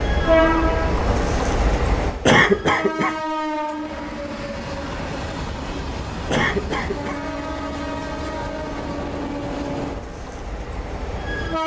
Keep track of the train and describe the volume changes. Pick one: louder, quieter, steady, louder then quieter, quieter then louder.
quieter.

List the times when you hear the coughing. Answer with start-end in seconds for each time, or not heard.
2.2-3.2, 6.3-7.2.